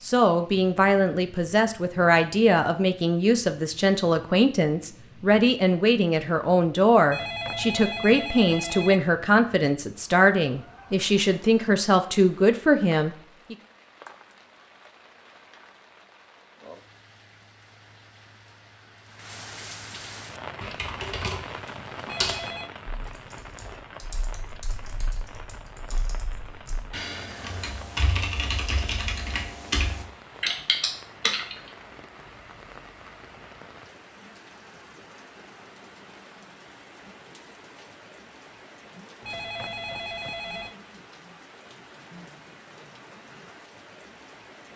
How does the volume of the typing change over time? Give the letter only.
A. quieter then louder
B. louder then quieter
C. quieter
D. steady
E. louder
A.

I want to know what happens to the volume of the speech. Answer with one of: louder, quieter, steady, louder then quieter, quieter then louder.
steady.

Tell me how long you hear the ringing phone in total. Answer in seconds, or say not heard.
4 s.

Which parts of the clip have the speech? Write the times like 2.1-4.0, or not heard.
0.0-13.6.